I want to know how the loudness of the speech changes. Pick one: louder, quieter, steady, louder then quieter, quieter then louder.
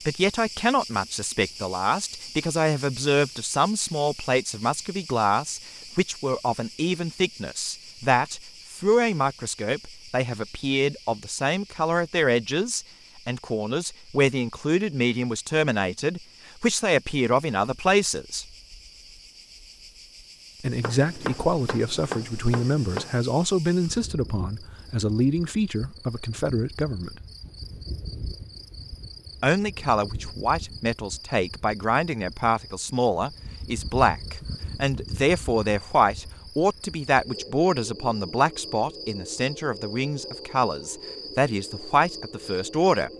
steady.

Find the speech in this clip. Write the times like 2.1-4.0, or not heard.
0.1-18.4, 20.6-27.2, 29.4-43.1.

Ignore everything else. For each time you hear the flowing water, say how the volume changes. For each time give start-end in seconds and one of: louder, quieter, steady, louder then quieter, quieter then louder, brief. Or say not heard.
not heard.